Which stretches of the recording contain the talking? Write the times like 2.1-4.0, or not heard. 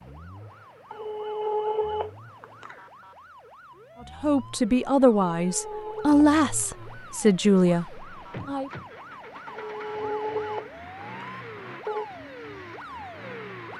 4.2-8.7.